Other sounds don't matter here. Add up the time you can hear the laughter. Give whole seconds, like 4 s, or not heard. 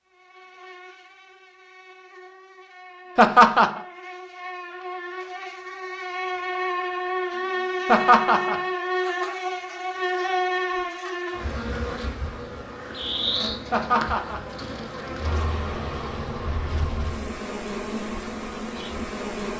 2 s.